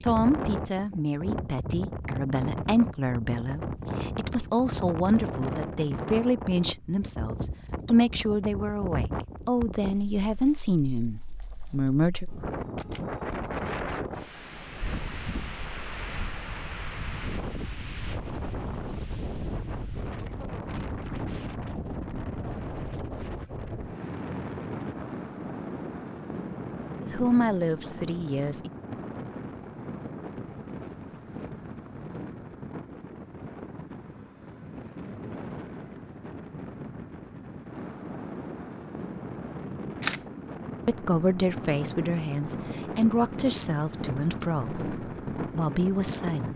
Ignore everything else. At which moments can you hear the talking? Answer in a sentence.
The talking can be heard from 0.0 to 12.2 s, from 27.0 to 28.7 s and from 40.9 to 46.5 s.